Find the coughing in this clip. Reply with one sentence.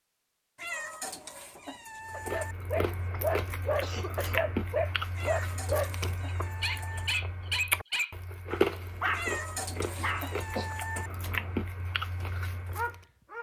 The coughing can be heard from 3.8 to 4.5 s and from 9.9 to 10.8 s.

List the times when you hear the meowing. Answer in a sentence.
You can hear the meowing from 0.6 to 2.5 s, from 5.2 to 7.1 s and from 9.1 to 11.1 s.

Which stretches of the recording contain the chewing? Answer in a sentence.
The chewing can be heard from 2.0 to 13.1 s.